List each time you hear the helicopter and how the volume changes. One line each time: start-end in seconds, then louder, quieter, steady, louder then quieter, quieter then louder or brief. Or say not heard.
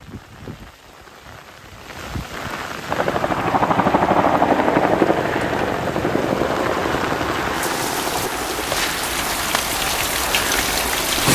2.9-11.3 quieter.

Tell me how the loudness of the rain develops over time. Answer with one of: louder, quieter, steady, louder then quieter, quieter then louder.
louder.